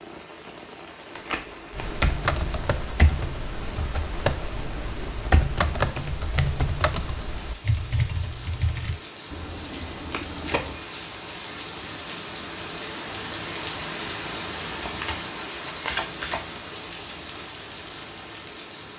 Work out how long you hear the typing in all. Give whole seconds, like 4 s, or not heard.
7 s.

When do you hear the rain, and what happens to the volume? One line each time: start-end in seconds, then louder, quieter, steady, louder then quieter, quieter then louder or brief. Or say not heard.
0.0-18.9 louder.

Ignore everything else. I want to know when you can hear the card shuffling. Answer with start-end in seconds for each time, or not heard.
1.1-2.0, 9.3-10.8, 14.8-16.4.